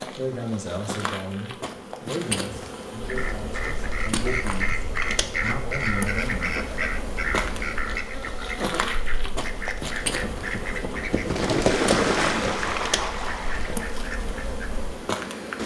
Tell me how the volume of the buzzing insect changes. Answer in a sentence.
The volume of the buzzing insect stays about the same.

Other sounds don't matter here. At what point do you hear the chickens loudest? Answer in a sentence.
The loudest moment of the chickens is at 12 seconds.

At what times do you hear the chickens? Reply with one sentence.
The chickens can be heard from 3.0 to 15.0 s.